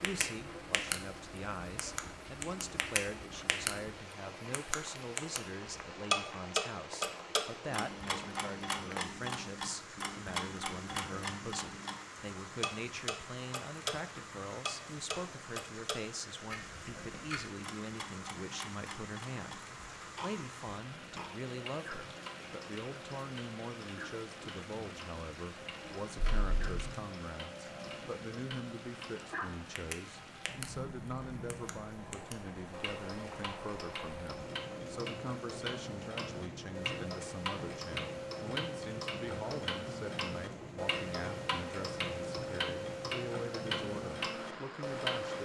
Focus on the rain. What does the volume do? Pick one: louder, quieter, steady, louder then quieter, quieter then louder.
steady.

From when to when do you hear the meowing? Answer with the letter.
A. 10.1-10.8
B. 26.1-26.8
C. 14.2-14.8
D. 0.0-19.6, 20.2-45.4
B.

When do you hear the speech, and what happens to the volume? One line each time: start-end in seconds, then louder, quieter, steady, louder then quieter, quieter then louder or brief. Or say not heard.
0.0-19.6 steady
20.2-45.4 steady.